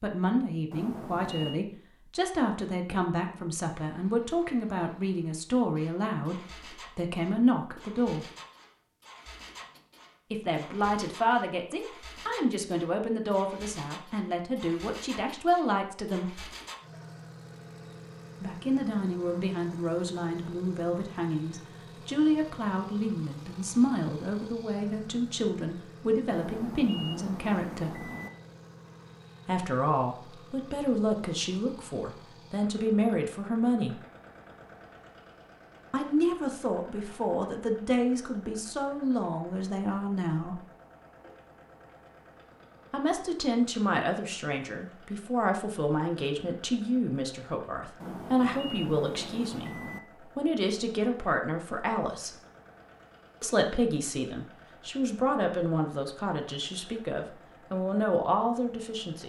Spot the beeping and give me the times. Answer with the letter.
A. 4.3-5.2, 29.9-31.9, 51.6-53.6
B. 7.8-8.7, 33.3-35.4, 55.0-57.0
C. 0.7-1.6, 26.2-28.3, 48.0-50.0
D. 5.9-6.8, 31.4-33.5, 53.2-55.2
C.